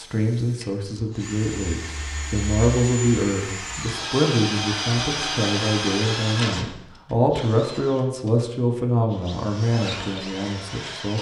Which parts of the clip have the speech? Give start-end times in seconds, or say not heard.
0.0-11.1.